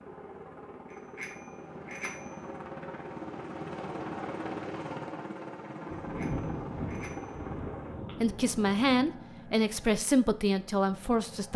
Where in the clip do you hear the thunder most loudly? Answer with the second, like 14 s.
6 s.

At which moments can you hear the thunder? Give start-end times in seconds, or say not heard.
5.8-9.0.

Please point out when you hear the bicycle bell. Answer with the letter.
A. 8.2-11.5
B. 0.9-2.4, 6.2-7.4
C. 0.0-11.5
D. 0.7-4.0
B.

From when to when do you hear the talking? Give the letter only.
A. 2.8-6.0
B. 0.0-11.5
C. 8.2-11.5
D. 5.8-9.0
C.